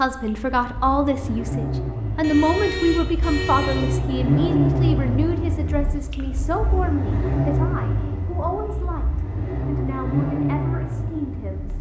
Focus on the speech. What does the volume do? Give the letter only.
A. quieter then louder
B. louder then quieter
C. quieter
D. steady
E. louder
C.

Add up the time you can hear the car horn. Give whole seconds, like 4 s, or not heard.
2 s.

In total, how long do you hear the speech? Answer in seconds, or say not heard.
12 s.